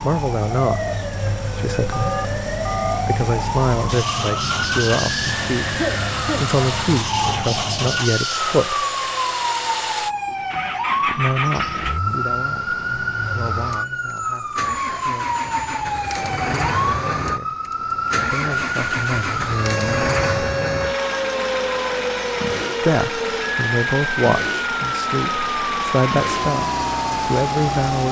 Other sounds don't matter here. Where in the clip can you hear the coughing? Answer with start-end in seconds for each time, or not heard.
5.6-6.5.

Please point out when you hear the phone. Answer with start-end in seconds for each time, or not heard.
1.9-3.0.